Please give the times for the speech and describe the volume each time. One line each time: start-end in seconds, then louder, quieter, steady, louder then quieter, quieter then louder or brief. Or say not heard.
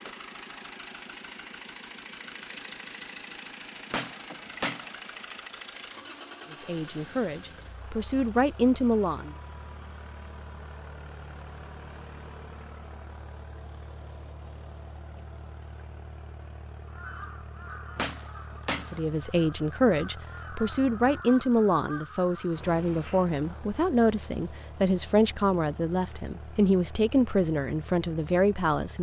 6.5-9.3 brief
18.8-28.9 steady.